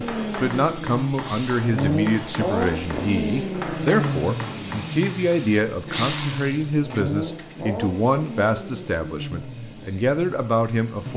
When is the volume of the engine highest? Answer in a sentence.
The volume of the engine peaks at 2 seconds.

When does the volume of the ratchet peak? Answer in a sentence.
The loudest moment of the ratchet is at 6 seconds.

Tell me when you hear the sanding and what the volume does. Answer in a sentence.
You can't hear the sanding here.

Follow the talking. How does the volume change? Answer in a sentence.
The volume of the talking stays about the same.